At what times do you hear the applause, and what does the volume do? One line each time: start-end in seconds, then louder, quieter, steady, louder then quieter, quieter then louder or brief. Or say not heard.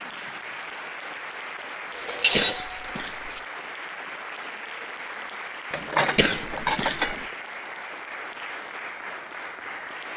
0.0-10.1 steady.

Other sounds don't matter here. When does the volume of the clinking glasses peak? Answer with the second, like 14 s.
2 s.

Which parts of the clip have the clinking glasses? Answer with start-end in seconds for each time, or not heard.
1.9-3.4, 5.7-7.2.